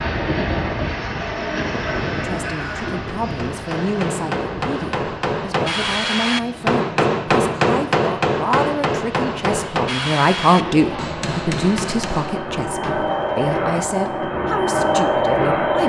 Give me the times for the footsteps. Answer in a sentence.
The footsteps can't be heard in this clip.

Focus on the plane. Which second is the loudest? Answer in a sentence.
The volume of the plane peaks at 15 seconds.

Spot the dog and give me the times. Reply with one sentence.
You can't hear the dog here.